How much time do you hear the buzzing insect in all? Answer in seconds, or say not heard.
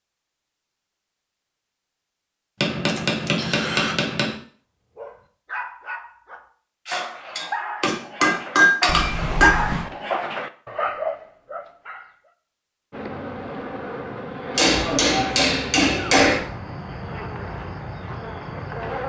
6 s.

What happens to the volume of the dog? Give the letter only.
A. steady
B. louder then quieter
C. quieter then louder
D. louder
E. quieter
D.